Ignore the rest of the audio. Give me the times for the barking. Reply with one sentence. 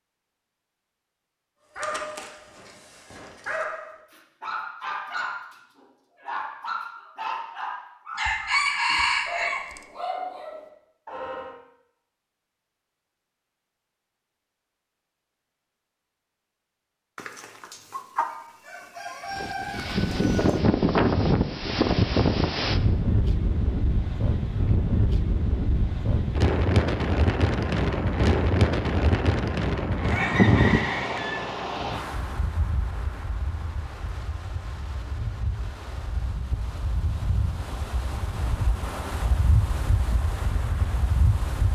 The barking can be heard from 1.8 to 11.6 s.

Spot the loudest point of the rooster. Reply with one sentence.
The volume of the rooster peaks at 9 seconds.